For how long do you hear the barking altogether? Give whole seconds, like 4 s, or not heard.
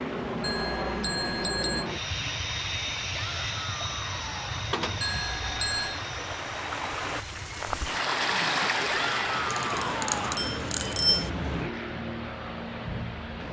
not heard.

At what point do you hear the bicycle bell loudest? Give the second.
11 s.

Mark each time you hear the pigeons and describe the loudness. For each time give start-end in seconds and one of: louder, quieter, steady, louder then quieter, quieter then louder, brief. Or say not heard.
not heard.